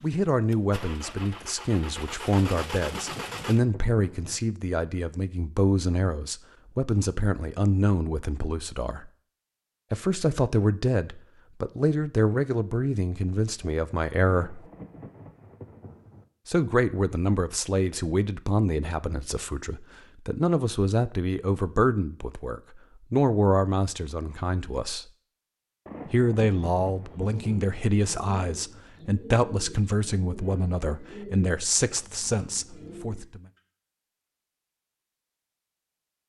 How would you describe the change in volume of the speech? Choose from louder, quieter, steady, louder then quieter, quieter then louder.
steady.